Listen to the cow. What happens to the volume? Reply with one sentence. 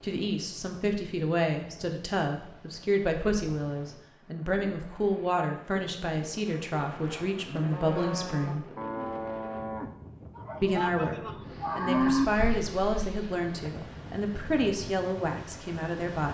The volume of the cow goes up.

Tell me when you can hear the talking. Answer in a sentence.
The talking can be heard from 0.0 to 8.7 s, from 10.6 to 11.2 s and from 11.8 to 16.2 s.